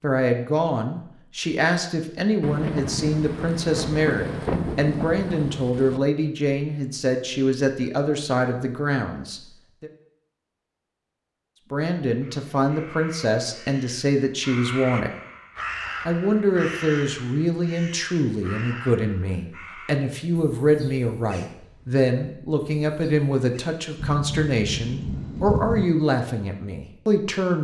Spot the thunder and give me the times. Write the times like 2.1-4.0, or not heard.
2.4-6.0, 23.9-25.9.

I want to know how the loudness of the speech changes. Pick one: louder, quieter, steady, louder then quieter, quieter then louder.
steady.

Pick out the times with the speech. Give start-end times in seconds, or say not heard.
0.0-9.9, 11.7-15.1, 16.1-27.5.